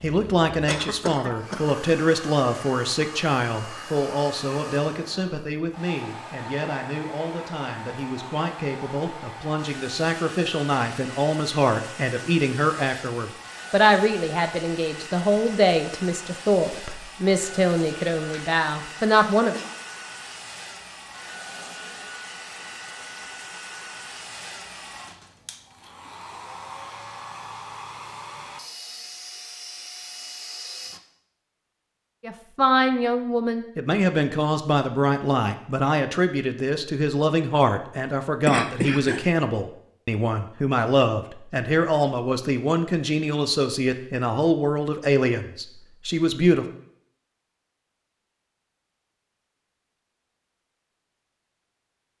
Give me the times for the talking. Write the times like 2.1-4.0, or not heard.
0.0-19.6, 32.2-46.6.